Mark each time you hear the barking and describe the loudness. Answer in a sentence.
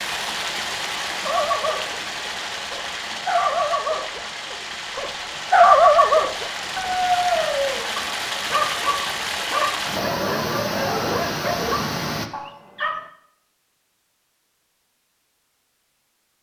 You can hear the barking from 1.2 to 13.1 s, getting louder then quieter.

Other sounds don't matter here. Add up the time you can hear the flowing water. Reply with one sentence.
You can hear the flowing water for 12 seconds altogether.